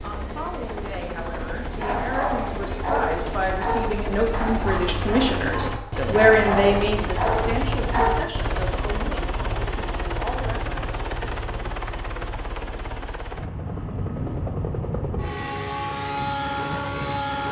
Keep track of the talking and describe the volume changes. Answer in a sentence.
The loudness of the talking goes up, then down.